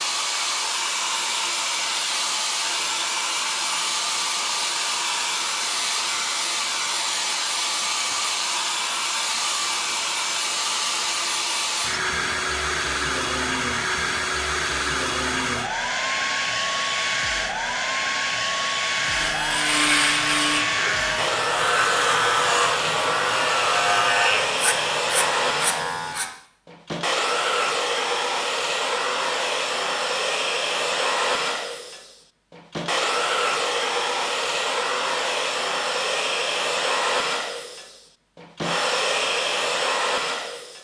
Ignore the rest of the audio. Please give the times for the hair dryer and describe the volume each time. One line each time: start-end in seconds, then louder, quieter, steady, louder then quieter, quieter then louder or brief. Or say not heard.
0.0-40.7 steady.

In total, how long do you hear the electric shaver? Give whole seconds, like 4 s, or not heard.
7 s.